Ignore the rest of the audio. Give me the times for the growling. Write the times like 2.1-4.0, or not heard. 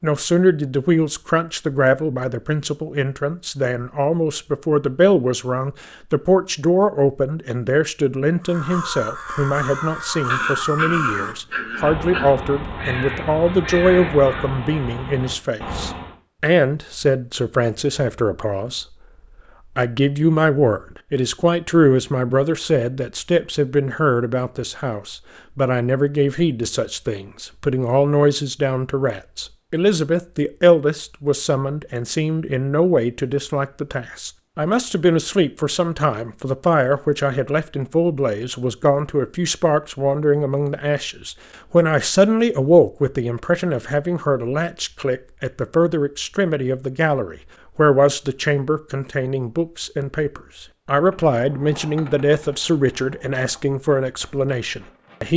10.2-12.3.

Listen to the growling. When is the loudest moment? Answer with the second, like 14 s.
11 s.